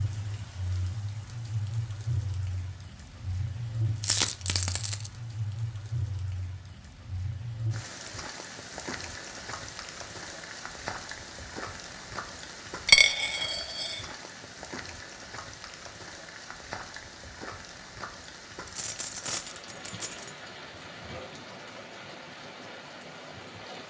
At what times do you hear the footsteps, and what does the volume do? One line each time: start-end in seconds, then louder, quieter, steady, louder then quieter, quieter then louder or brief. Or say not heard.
not heard.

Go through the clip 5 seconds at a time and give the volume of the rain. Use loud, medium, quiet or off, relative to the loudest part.
loud, loud, loud, medium, medium.